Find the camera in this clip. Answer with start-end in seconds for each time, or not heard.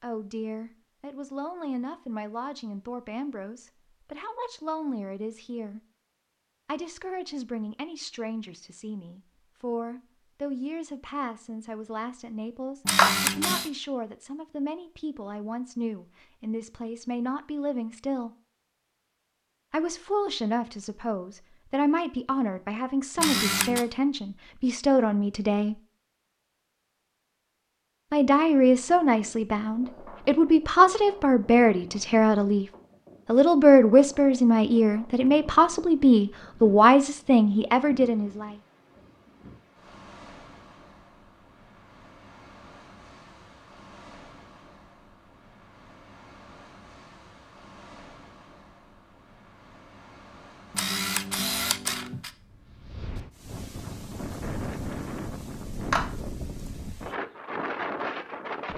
12.8-13.7, 23.1-23.9, 50.7-52.3.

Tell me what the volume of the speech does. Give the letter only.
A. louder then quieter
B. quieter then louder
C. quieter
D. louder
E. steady
D.